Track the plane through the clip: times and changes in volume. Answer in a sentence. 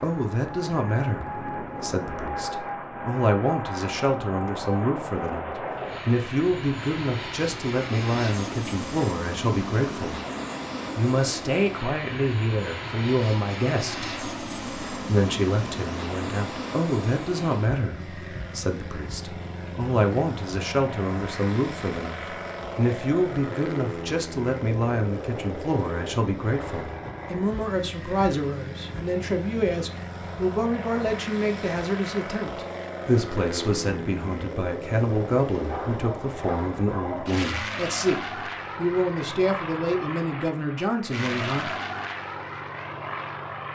You can hear the plane from 0.0 to 43.7 s, at a steady volume.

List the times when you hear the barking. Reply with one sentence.
The barking can be heard from 35.6 to 37.5 s.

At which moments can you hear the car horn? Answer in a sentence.
You can't hear the car horn here.